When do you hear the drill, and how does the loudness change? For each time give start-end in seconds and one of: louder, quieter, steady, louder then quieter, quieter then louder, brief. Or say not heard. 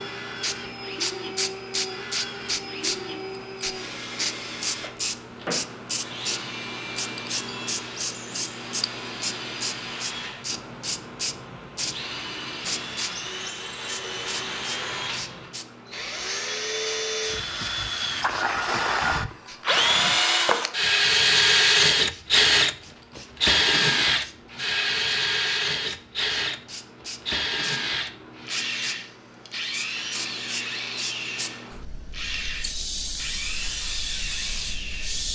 0.0-35.3 louder then quieter.